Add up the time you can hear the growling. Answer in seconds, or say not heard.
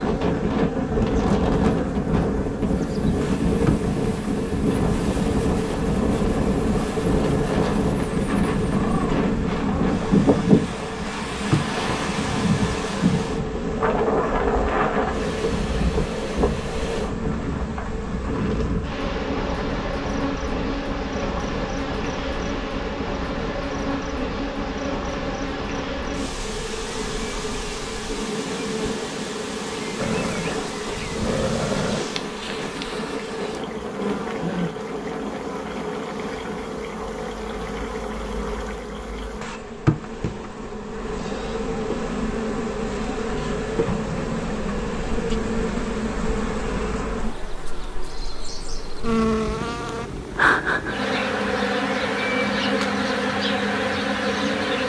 4 s.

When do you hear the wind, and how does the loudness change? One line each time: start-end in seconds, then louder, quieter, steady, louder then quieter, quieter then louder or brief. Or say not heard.
0.0-36.5 quieter.